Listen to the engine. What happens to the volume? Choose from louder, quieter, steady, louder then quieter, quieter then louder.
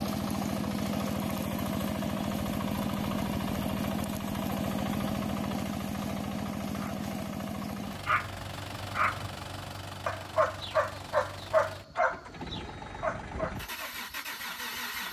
quieter.